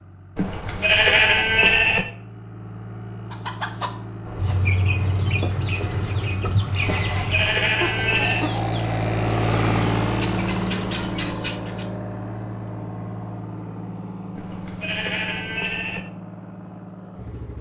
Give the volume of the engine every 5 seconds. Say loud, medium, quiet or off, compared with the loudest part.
medium, loud, loud, medium.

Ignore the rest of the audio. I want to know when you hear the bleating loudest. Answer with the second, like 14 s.
1 s.